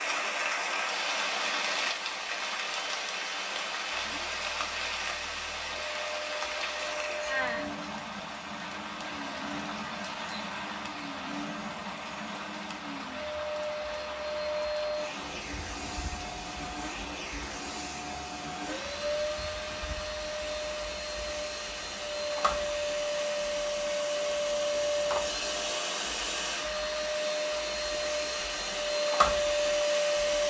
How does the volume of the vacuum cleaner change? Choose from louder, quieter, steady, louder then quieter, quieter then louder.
louder.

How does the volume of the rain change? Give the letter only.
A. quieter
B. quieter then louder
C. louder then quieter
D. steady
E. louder
A.